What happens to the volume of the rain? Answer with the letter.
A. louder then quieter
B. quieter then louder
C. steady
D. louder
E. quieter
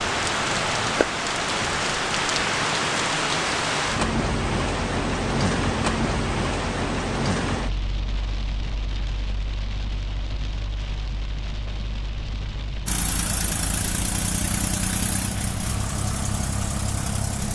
E.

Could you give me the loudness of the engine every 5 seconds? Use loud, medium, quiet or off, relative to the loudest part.
off, off, loud, loud.